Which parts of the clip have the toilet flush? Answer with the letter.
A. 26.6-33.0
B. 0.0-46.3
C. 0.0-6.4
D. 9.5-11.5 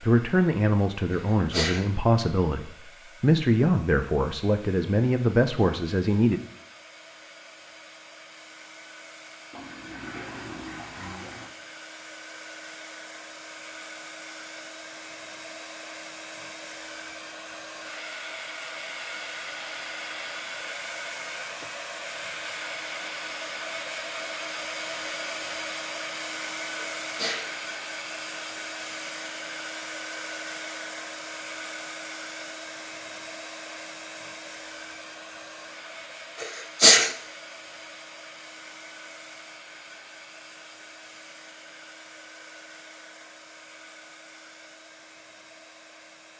D.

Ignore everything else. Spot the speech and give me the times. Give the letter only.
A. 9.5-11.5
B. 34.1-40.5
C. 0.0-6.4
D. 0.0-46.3
C.